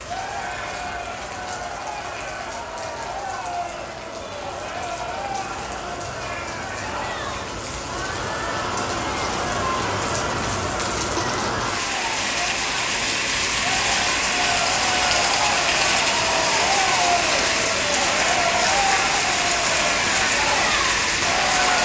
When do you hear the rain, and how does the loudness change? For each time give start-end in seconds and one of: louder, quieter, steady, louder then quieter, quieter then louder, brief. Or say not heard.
0.0-21.8 louder.